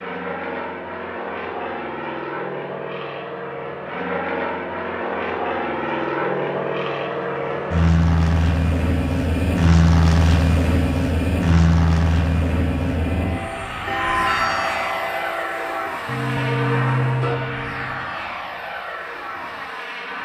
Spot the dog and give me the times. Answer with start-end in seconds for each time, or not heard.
not heard.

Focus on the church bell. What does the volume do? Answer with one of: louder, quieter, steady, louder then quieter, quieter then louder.
quieter then louder.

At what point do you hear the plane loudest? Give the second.
10 s.